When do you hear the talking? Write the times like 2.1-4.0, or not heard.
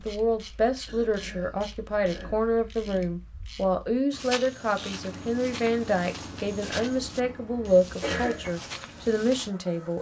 0.1-9.9.